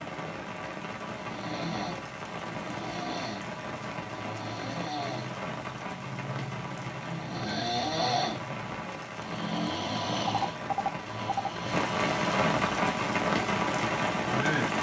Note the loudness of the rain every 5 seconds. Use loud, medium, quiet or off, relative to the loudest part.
medium, medium, loud.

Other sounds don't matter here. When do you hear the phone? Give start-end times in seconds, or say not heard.
10.2-11.5.